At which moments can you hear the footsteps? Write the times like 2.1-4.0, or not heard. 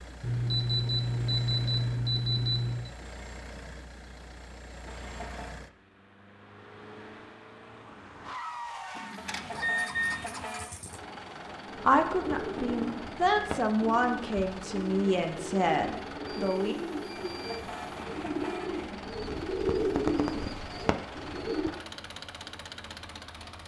not heard.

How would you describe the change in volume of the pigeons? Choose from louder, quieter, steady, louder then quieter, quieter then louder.
louder.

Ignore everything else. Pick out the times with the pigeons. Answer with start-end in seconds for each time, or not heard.
11.7-21.7.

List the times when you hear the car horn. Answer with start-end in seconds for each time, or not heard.
4.8-5.5, 9.2-10.8, 17.2-18.9.